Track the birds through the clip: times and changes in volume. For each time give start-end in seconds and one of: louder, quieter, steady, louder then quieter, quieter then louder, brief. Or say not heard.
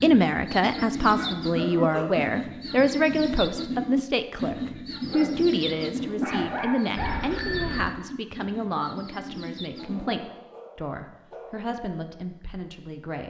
0.0-10.2 quieter.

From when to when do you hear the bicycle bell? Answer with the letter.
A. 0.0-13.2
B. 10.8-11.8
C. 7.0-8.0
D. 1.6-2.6
C.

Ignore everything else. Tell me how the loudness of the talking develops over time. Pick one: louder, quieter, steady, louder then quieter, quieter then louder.
quieter.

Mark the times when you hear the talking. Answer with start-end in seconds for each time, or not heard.
0.0-13.2.